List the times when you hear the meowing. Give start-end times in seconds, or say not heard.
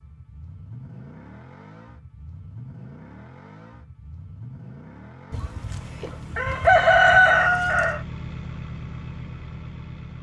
not heard.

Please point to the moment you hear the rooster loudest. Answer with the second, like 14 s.
7 s.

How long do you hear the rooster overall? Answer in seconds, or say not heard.
3 s.